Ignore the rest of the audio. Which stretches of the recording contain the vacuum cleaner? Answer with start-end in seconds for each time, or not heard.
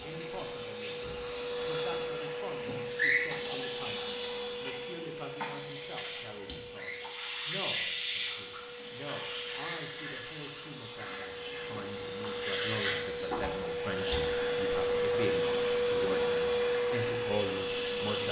0.0-18.2.